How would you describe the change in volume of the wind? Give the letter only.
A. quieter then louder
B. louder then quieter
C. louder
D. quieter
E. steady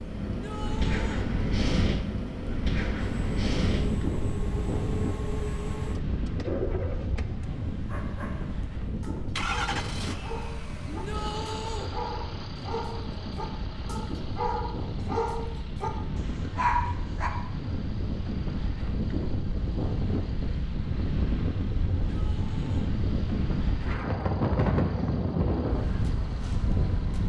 A.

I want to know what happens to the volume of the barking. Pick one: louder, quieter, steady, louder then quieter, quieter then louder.
louder.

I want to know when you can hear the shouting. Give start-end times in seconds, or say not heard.
0.2-1.3, 10.8-11.9, 22.1-22.9.